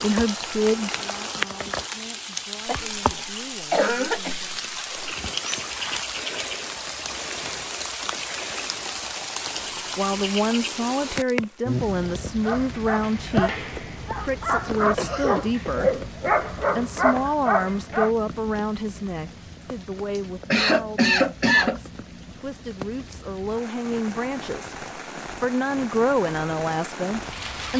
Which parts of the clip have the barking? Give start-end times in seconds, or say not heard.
12.2-18.1.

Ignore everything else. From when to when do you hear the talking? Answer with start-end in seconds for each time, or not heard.
0.0-4.7, 9.9-27.7.